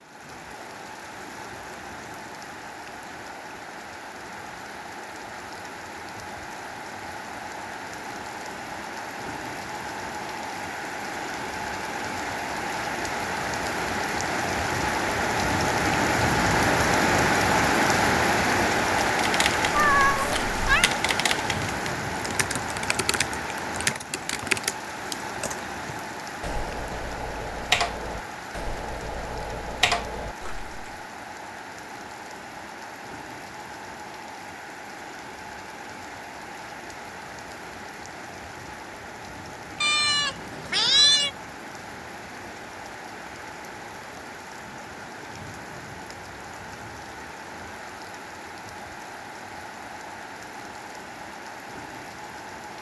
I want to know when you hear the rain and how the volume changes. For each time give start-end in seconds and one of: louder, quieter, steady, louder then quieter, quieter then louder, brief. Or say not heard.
0.0-52.7 louder then quieter.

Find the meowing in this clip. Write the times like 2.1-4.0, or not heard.
19.7-20.9, 39.8-41.3.